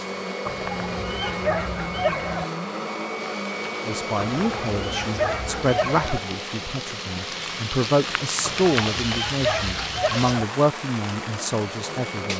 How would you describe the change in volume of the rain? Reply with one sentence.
The loudness of the rain goes up, then down.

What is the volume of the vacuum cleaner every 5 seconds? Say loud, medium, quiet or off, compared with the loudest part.
loud, medium, medium.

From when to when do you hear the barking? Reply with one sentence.
The barking can be heard from 0.5 to 2.5 s, from 4.2 to 6.2 s and from 8.4 to 10.4 s.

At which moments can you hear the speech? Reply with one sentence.
The speech can be heard from 3.9 to 12.3 s.